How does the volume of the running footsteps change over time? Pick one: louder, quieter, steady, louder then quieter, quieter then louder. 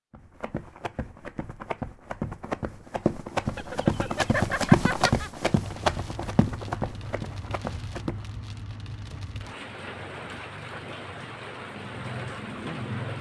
louder then quieter.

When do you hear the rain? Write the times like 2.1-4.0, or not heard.
5.5-13.1.